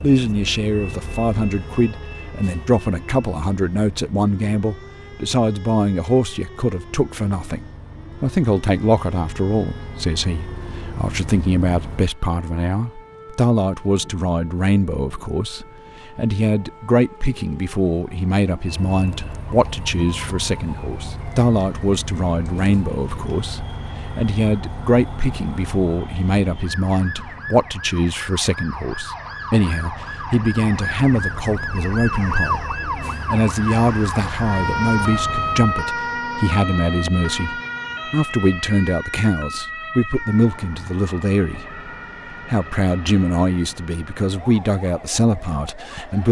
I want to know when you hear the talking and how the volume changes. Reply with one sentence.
You can hear the talking from 0.0 to 46.2 s, at a steady volume.